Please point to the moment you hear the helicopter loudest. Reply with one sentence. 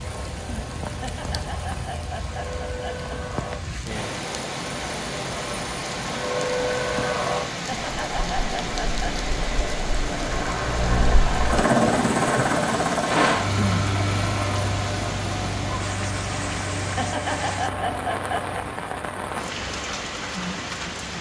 The volume of the helicopter peaks at 12 seconds.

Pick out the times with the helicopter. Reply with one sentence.
You can hear the helicopter from 0.0 to 21.1 s.